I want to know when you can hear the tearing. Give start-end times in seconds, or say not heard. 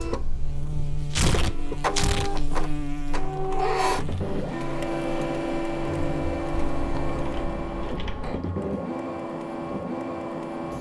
0.8-2.3.